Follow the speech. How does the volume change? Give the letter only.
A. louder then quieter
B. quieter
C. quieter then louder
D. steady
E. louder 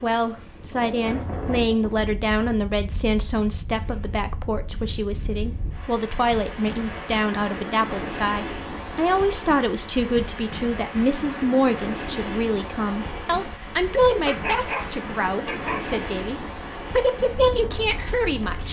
D.